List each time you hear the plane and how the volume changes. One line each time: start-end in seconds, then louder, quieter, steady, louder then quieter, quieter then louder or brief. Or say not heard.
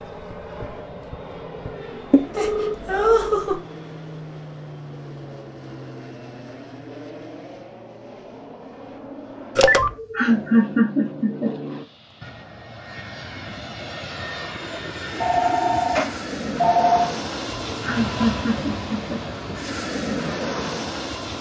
0.0-21.3 louder.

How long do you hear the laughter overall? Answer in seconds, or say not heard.
5 s.